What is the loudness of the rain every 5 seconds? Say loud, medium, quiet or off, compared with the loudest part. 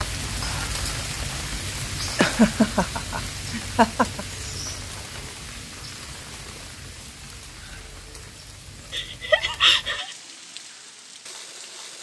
loud, medium, medium.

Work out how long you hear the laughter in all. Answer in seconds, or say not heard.
3 s.